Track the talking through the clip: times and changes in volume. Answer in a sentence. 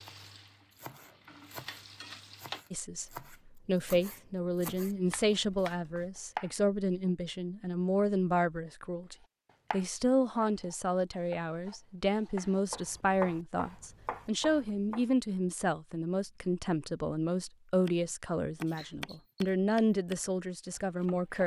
You can hear the talking from 2.7 to 21.4 s, at a steady volume.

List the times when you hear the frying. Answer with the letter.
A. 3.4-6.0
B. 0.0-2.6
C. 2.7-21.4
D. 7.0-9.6
B.